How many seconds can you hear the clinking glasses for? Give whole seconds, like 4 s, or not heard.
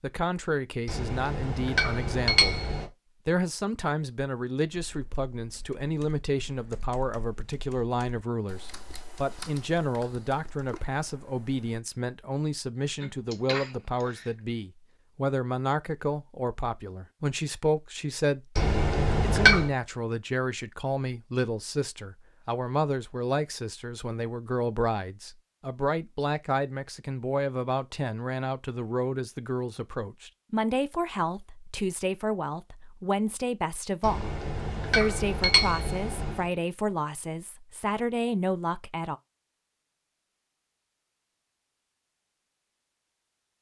6 s.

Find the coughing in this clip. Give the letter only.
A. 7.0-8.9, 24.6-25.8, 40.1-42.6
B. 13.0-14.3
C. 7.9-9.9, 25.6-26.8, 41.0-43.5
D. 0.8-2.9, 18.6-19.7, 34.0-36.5
B.